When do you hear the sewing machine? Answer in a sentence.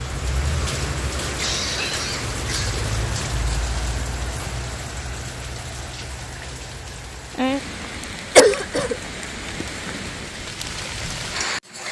The sewing machine can't be heard in this clip.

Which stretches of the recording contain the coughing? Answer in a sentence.
The coughing can be heard from 1.4 to 2.8 s and from 8.3 to 8.9 s.